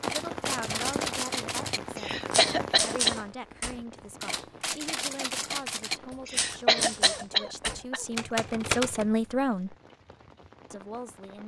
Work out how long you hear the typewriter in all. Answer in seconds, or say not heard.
9 s.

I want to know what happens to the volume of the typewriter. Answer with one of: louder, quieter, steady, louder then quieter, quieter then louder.
steady.